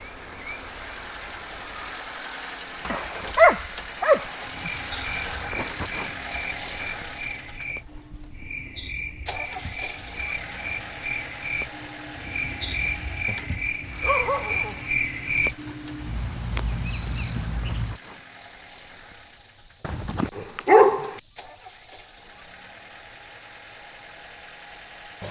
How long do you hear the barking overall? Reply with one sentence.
The barking can be heard for 5 seconds in total.